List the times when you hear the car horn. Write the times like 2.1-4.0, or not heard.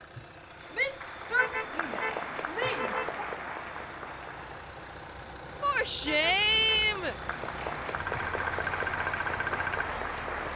1.3-3.1, 6.0-6.8.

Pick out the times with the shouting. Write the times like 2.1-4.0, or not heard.
0.7-3.0, 5.6-7.2.